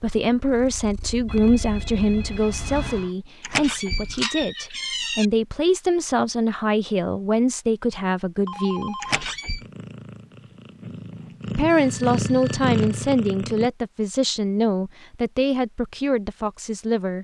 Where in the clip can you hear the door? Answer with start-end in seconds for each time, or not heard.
3.4-5.2, 9.0-9.7.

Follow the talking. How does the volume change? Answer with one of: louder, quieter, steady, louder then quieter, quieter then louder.
steady.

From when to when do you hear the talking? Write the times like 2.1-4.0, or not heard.
0.0-8.9, 11.6-17.1.